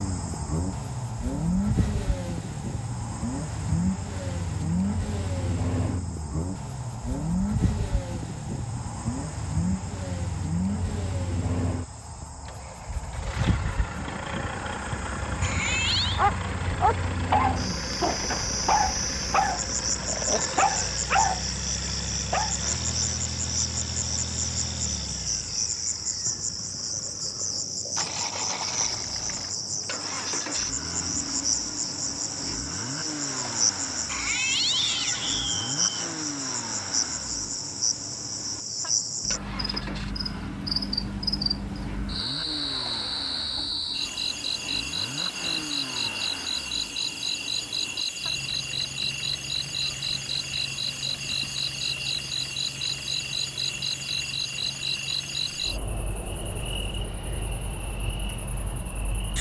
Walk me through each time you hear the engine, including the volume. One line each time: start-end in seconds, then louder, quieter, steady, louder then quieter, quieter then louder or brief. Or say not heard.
0.0-59.3 quieter.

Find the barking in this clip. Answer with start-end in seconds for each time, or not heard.
16.1-22.6.